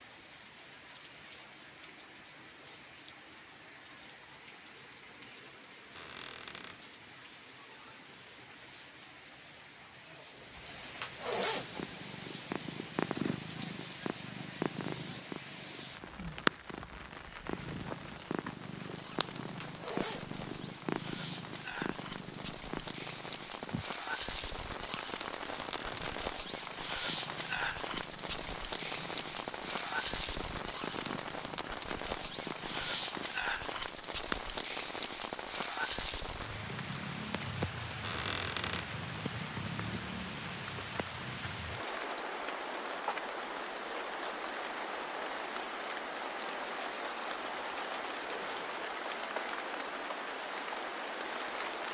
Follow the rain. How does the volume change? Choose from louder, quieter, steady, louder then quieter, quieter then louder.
louder.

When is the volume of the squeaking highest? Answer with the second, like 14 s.
38 s.